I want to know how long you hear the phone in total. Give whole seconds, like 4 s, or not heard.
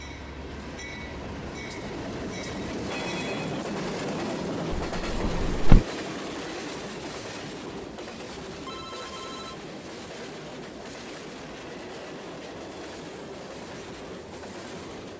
2 s.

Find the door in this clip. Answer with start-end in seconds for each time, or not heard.
4.7-5.8.